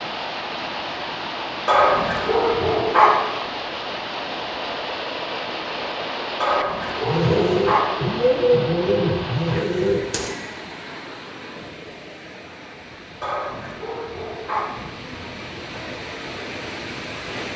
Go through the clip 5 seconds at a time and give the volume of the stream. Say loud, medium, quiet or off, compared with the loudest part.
loud, loud, medium, loud.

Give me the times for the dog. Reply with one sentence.
The dog can be heard from 1.6 to 3.2 s, from 6.4 to 8.0 s and from 13.2 to 14.7 s.